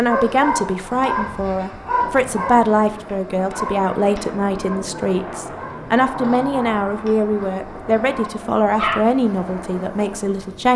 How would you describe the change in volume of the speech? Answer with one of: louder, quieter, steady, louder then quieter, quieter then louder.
steady.